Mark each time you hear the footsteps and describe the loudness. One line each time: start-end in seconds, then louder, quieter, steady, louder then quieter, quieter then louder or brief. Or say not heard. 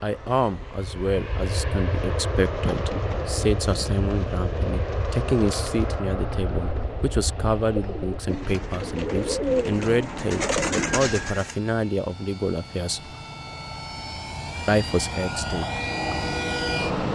not heard.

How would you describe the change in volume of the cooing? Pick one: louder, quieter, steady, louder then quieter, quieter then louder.
louder.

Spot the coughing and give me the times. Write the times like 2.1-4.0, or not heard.
not heard.